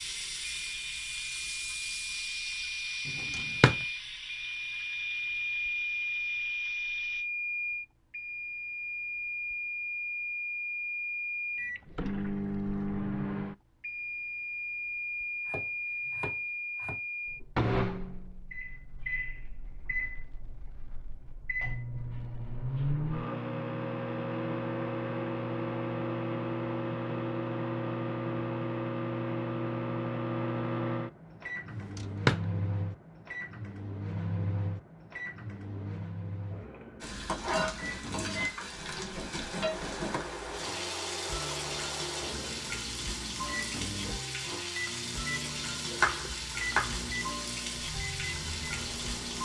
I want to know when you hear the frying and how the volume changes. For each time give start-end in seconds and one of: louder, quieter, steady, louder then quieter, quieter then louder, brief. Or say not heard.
0.0-7.2 quieter
37.0-49.4 steady.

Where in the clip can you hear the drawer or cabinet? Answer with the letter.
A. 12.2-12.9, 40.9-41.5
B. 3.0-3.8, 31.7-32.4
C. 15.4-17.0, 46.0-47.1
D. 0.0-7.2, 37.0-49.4
B.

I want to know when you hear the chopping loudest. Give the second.
46 s.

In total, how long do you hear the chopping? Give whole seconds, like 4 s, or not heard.
3 s.